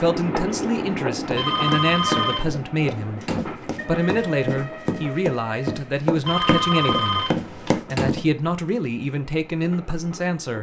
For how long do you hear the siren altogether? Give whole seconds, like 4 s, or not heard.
not heard.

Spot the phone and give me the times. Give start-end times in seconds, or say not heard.
1.3-2.5, 6.2-7.8.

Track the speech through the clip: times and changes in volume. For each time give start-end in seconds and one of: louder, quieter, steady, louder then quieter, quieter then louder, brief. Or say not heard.
0.0-10.5 steady.